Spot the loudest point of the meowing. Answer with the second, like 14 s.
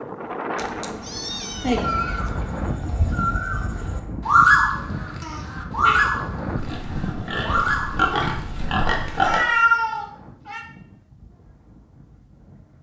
10 s.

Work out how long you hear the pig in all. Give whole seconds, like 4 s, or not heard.
3 s.